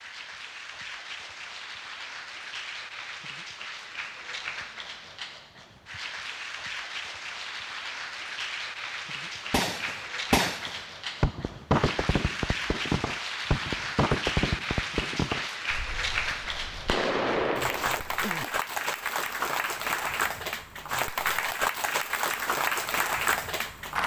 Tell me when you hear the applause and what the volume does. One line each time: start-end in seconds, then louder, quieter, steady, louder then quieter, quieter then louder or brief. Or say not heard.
0.0-24.0 louder.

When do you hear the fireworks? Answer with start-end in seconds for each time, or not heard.
9.5-18.6.